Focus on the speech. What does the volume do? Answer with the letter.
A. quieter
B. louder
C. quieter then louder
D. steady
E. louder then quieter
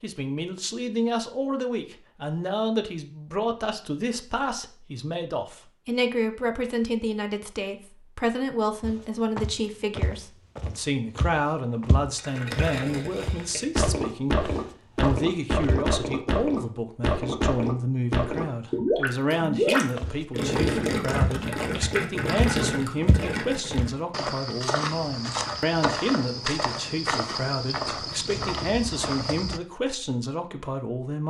D.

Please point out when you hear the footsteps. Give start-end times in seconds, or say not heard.
8.8-15.8, 19.9-29.6.